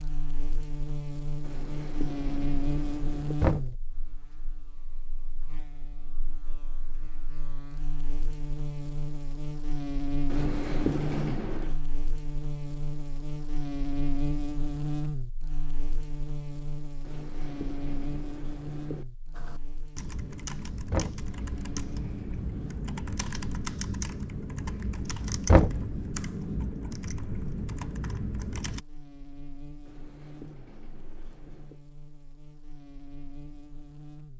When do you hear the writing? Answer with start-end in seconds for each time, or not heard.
1.4-3.4, 10.2-11.8, 17.0-19.1, 21.4-22.8, 29.9-31.8.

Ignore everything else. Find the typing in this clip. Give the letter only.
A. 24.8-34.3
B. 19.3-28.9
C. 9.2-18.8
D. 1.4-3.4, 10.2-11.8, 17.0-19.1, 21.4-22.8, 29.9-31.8
B.